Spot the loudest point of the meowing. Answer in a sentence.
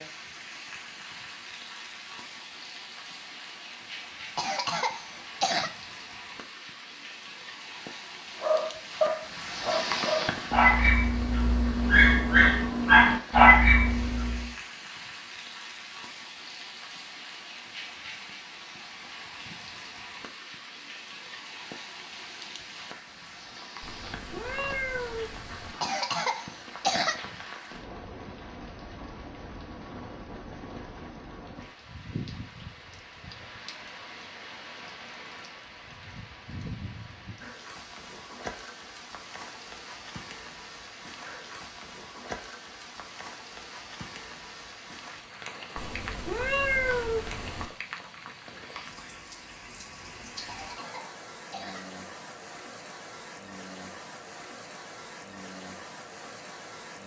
The volume of the meowing peaks at 47 seconds.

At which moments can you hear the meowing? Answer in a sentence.
You can hear the meowing from 23.8 to 25.8 s and from 45.8 to 47.7 s.